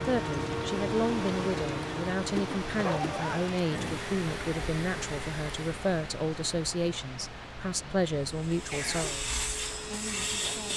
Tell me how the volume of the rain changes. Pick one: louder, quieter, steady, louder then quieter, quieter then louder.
quieter.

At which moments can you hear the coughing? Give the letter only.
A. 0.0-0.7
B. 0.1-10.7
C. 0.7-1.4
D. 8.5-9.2
D.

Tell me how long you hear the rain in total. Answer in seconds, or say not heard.
11 s.